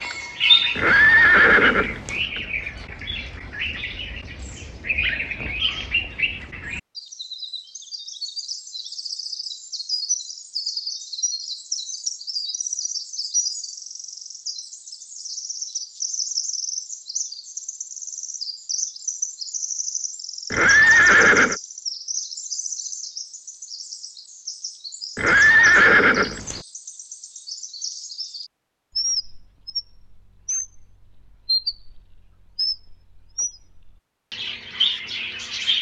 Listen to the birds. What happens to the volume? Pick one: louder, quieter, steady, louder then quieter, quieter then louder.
quieter then louder.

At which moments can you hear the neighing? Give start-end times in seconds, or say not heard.
0.8-2.2, 20.5-21.6, 25.1-26.6.